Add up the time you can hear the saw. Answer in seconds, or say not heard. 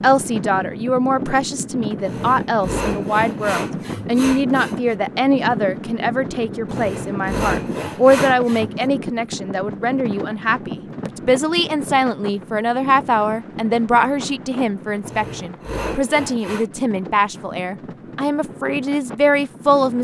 7 s.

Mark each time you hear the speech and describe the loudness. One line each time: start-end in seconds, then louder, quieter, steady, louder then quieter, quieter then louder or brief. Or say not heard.
0.0-19.9 steady.